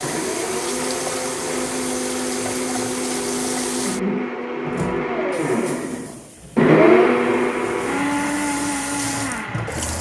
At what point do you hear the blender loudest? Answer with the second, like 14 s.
7 s.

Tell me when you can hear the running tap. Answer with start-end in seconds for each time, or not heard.
0.0-9.9.